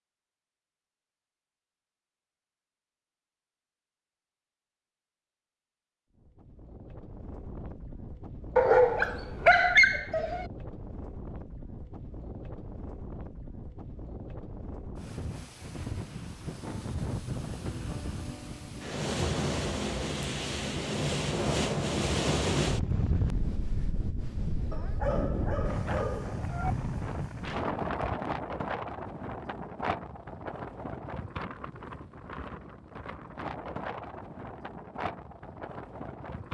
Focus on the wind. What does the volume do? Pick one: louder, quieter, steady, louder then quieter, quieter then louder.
louder then quieter.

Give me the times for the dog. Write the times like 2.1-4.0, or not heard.
8.6-10.4, 24.7-26.8.